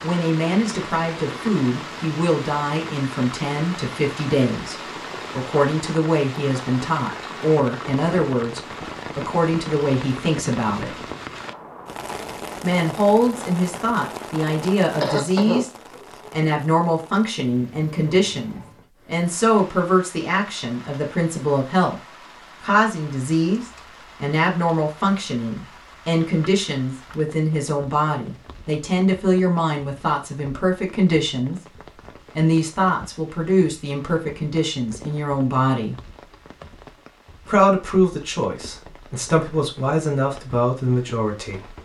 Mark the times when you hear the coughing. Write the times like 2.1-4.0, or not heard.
15.0-16.1.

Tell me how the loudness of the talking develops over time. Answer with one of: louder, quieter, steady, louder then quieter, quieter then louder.
steady.